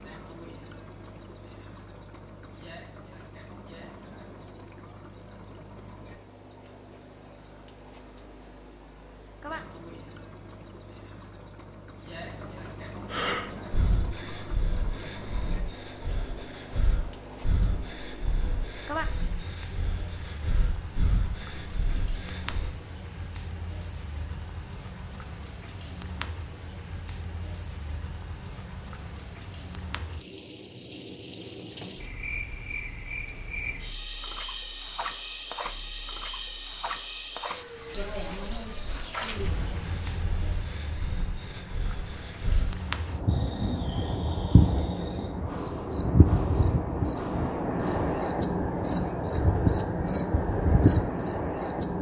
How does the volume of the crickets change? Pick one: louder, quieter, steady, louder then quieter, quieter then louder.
louder.